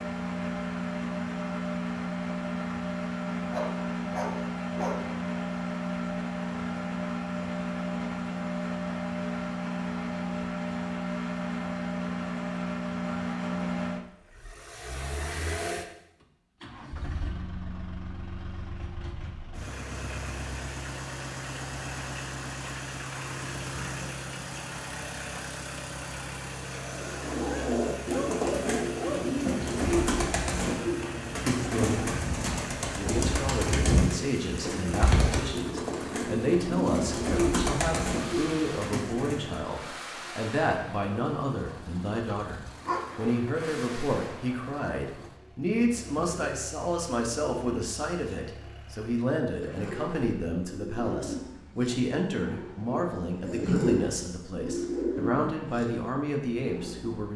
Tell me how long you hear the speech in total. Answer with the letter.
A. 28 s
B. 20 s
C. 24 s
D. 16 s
C.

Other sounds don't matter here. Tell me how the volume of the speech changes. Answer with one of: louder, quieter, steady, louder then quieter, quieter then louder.
steady.